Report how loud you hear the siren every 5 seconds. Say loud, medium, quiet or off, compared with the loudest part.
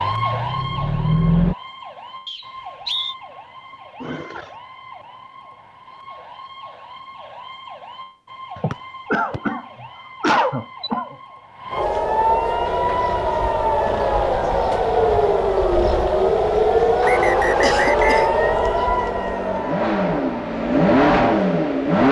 quiet, quiet, loud, loud, off.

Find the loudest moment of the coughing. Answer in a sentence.
The volume of the coughing peaks at 10 seconds.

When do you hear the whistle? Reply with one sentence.
The whistle can be heard from 2.2 to 3.1 s, from 8.7 to 9.4 s and from 17.0 to 18.3 s.